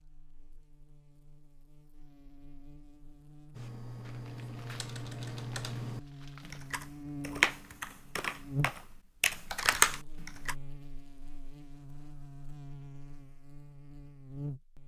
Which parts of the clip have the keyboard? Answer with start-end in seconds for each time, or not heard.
3.5-10.6.